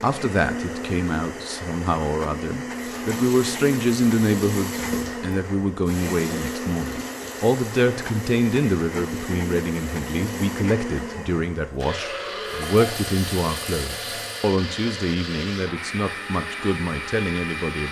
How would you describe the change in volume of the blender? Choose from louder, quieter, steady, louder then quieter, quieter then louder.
steady.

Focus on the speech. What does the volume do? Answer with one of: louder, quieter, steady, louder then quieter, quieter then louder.
steady.